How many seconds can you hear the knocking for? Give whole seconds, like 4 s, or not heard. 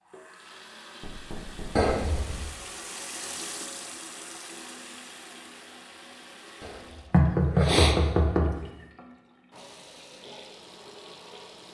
3 s.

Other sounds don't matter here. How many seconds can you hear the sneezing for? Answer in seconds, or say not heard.
2 s.